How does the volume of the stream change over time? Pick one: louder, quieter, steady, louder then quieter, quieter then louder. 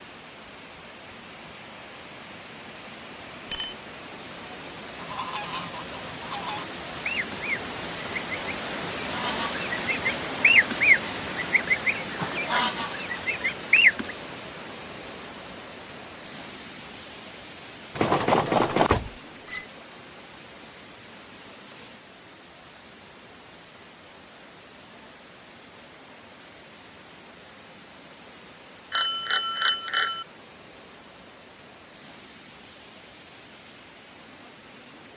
louder then quieter.